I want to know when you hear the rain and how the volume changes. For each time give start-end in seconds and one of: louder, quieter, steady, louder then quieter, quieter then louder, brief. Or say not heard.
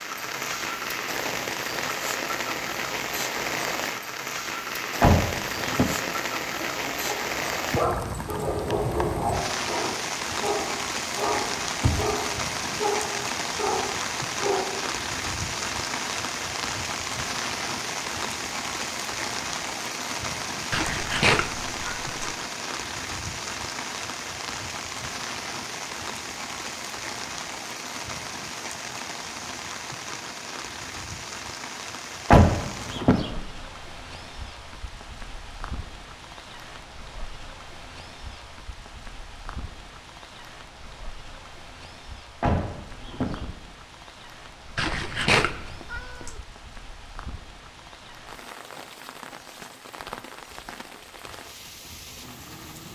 0.0-52.9 quieter.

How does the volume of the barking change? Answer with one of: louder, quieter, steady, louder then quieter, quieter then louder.
steady.